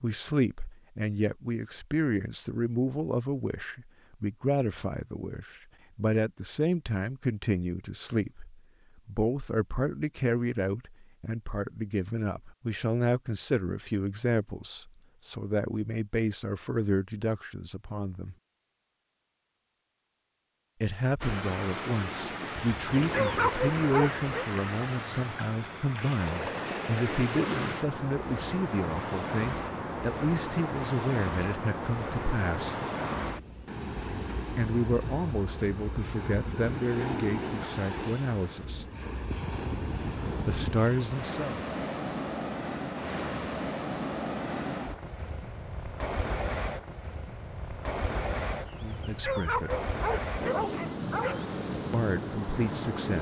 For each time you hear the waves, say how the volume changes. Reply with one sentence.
The waves can be heard from 21.2 to 53.1 s, at a steady volume.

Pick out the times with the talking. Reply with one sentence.
You can hear the talking from 0.0 to 18.4 s, from 20.8 to 32.8 s, from 34.5 to 38.9 s, from 40.5 to 41.6 s, from 48.8 to 49.8 s and from 51.9 to 53.1 s.